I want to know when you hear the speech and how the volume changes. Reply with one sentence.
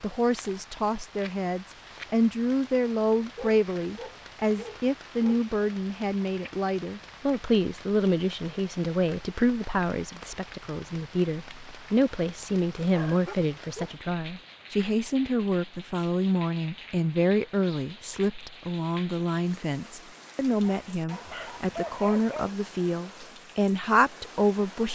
The speech can be heard from 0.0 to 24.8 s, at a steady volume.